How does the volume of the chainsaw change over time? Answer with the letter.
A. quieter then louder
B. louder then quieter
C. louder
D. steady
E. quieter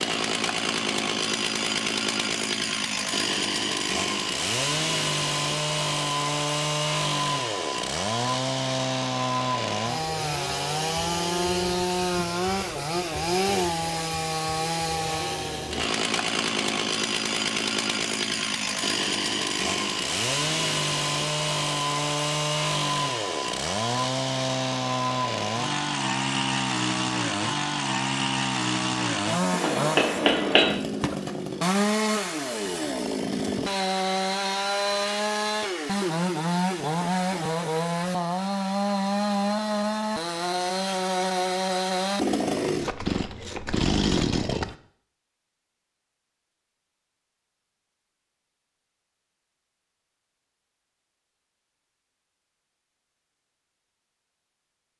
D.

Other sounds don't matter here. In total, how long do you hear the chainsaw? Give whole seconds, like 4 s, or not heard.
45 s.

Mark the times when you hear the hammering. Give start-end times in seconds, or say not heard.
29.5-30.8.